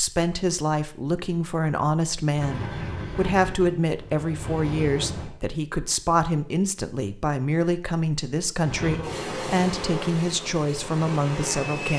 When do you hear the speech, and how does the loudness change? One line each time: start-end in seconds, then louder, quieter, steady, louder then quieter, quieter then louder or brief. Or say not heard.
0.0-11.9 steady.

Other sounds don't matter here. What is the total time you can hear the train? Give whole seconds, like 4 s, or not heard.
6 s.